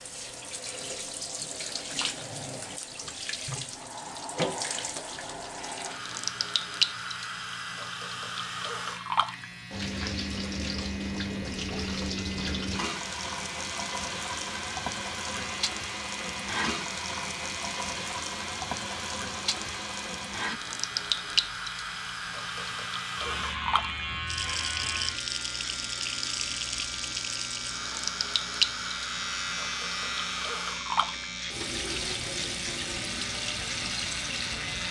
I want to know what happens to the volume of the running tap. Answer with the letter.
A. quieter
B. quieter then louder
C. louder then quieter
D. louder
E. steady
E.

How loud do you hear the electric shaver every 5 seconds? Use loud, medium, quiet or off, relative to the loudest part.
off, medium, medium, medium, loud, loud, loud.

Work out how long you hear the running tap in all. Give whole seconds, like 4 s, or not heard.
35 s.